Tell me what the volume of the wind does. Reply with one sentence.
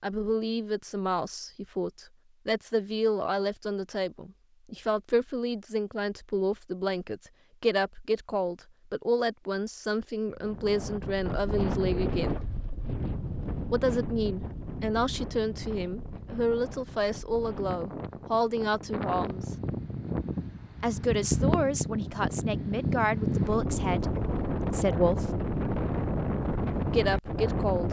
The volume of the wind goes down, then up.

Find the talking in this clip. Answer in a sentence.
The talking can be heard from 0.0 to 12.4 s, from 13.7 to 19.6 s, from 20.8 to 25.3 s and from 26.9 to 27.8 s.